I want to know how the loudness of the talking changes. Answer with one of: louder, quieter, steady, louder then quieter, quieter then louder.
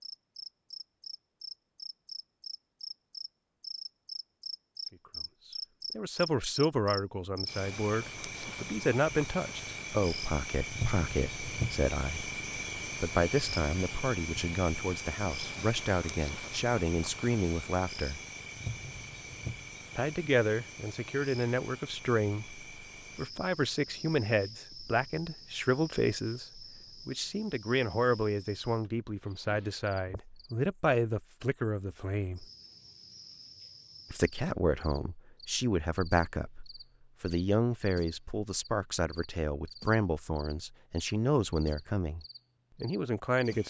steady.